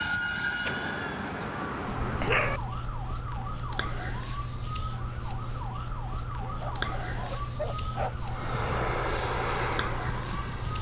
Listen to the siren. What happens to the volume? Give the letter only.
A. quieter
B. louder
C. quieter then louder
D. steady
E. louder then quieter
D.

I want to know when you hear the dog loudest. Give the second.
2 s.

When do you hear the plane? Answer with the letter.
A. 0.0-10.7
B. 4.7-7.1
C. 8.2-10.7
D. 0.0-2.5
C.